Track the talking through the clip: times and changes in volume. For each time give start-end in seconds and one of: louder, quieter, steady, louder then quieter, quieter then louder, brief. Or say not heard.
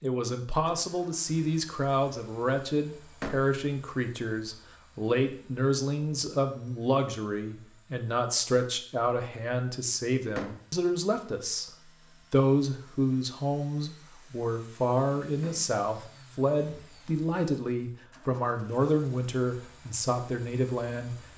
0.0-21.2 steady.